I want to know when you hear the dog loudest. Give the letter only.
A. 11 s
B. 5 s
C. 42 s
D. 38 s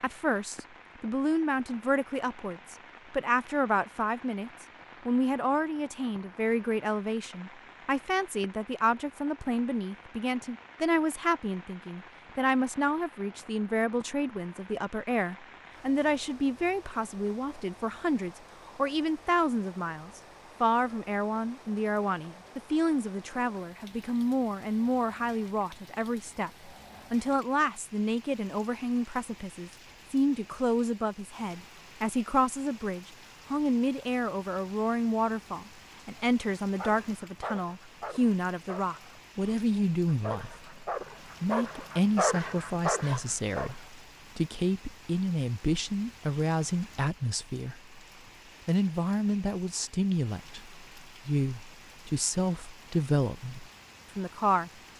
C.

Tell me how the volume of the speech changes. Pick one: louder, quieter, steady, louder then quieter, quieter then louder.
steady.